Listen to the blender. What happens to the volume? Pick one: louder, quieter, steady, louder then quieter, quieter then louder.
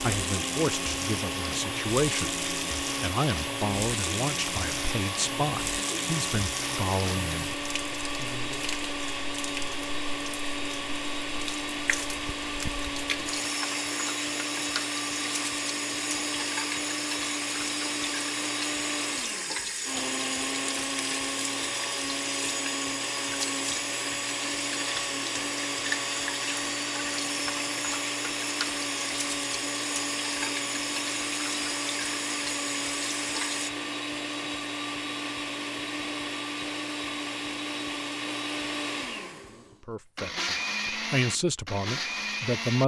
steady.